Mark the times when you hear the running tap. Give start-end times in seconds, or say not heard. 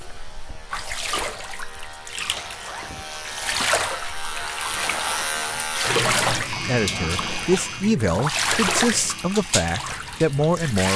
0.0-10.9.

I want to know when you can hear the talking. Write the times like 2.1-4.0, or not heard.
6.7-10.9.